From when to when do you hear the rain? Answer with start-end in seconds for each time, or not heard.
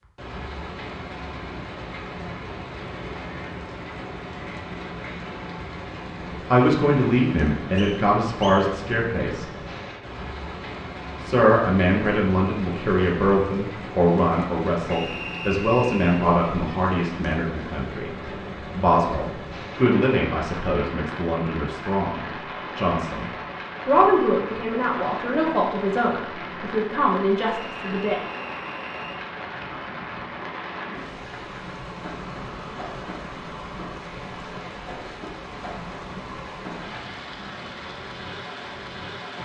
0.0-39.3.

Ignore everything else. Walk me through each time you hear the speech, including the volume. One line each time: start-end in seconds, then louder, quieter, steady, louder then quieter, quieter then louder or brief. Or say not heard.
6.5-9.4 brief
11.2-28.2 steady.